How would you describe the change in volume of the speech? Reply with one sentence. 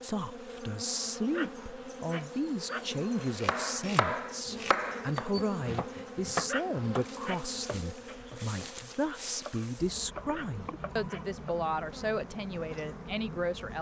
The volume of the speech stays about the same.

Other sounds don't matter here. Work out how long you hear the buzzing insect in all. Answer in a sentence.
The buzzing insect can be heard for 14 seconds in total.